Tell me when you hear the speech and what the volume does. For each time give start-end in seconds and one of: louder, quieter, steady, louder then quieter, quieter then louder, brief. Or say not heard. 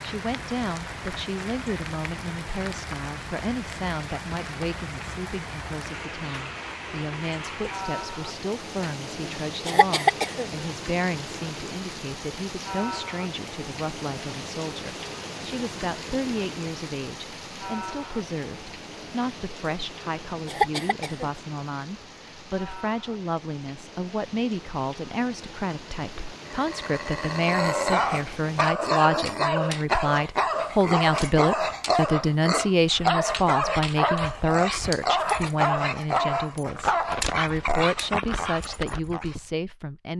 0.0-40.1 louder.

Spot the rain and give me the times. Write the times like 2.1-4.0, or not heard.
0.0-28.8.